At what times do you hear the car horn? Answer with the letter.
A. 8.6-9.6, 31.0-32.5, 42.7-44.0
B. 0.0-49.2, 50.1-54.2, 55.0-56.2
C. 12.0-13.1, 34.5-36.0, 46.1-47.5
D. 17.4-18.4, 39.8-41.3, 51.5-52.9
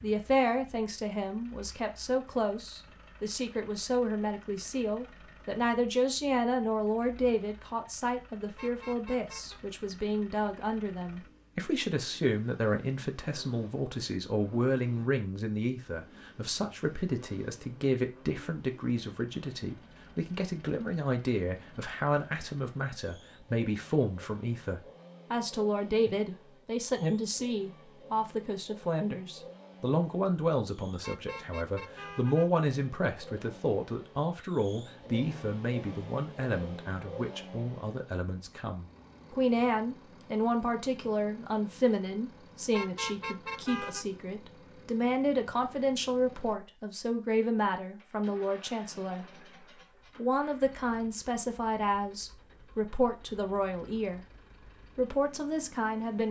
A.